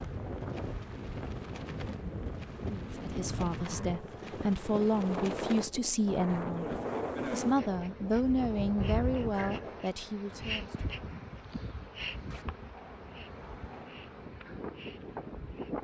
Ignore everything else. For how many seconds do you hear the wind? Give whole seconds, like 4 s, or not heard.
16 s.